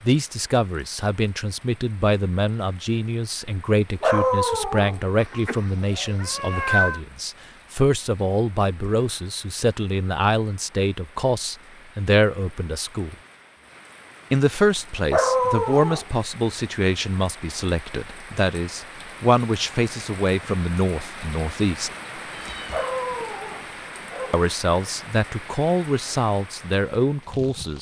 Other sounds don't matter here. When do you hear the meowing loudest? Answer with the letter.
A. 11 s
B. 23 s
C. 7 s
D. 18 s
C.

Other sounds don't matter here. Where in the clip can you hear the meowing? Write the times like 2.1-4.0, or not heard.
5.2-7.0, 22.3-22.9.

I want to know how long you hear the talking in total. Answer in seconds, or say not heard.
24 s.